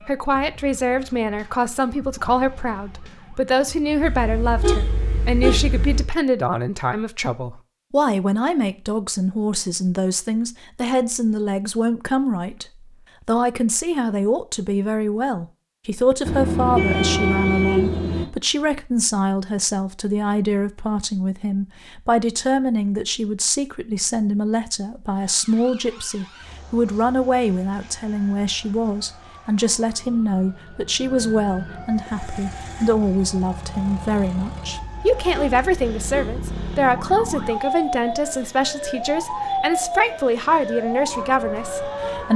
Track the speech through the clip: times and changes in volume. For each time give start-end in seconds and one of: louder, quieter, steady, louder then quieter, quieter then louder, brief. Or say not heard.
0.1-12.7 steady
13.2-42.3 steady.